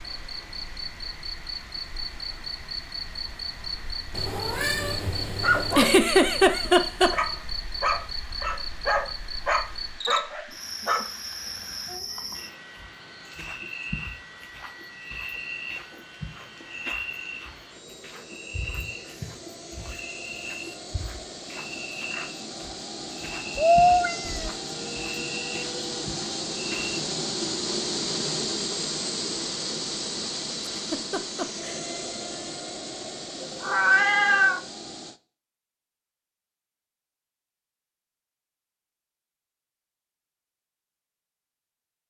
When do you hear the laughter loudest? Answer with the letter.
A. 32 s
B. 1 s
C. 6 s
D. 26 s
C.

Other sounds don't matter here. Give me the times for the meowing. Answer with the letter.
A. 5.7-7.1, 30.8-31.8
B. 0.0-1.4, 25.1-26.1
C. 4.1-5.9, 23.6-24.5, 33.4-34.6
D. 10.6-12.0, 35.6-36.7
C.